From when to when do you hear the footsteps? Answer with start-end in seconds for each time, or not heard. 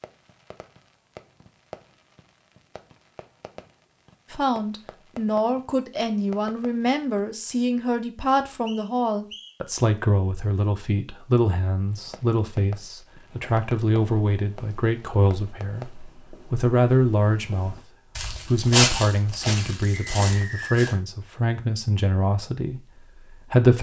13.2-20.9.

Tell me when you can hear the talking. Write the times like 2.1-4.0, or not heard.
4.3-23.7.